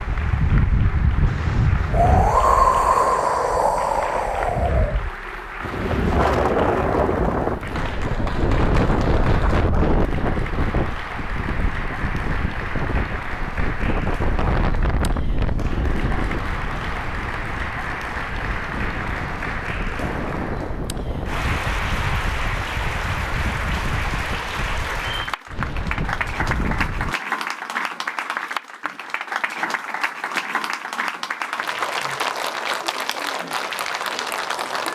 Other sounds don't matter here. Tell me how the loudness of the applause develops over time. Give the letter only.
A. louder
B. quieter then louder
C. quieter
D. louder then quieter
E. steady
A.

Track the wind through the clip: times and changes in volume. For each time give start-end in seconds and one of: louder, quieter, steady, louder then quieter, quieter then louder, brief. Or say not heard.
0.0-27.1 quieter.